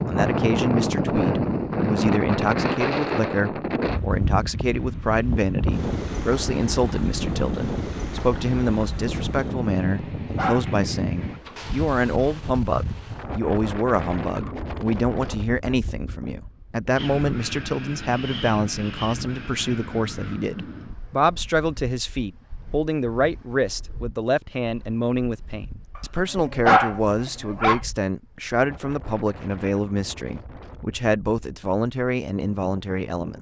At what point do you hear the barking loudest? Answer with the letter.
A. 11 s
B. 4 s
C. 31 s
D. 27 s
D.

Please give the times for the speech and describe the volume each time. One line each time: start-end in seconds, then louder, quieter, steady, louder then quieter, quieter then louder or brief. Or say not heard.
0.1-33.3 steady.